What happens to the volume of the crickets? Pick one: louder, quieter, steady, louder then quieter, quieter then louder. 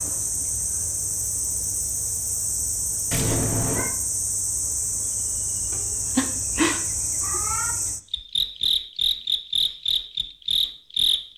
louder.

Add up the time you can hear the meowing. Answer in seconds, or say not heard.
3 s.